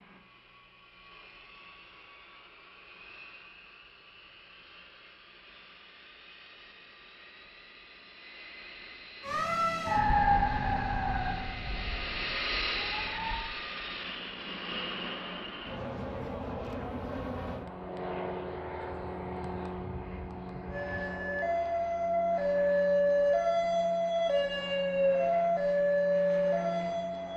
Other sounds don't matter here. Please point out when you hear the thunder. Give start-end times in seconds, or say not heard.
19.4-20.9.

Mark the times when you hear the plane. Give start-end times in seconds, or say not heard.
0.0-27.3.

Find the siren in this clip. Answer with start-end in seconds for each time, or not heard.
9.2-13.3, 20.7-27.3.